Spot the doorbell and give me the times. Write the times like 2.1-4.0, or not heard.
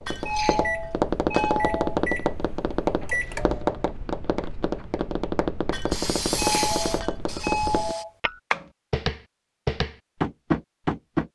0.2-2.0, 6.3-8.1.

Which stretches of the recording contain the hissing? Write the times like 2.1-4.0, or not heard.
5.9-8.1.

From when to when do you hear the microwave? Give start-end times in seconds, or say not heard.
0.6-3.8.